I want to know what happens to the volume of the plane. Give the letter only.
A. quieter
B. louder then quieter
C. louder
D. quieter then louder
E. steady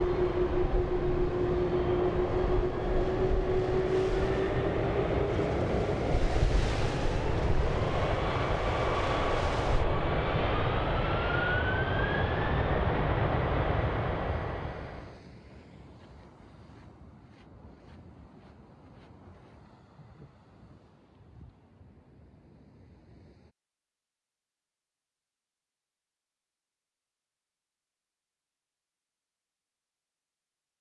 E.